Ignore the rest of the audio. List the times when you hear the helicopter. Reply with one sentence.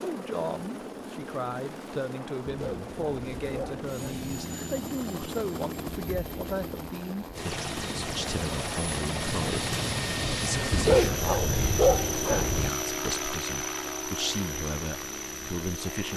The helicopter can be heard from 0.0 to 16.1 s.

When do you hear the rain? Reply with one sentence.
The rain can't be heard in this clip.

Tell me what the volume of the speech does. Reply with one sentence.
The loudness of the speech stays about the same.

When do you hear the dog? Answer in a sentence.
The dog can be heard from 2.5 to 4.3 s and from 10.7 to 12.7 s.